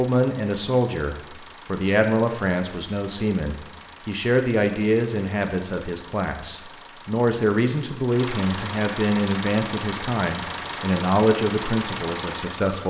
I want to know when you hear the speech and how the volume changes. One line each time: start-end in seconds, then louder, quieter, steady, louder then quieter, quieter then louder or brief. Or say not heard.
0.0-12.8 steady.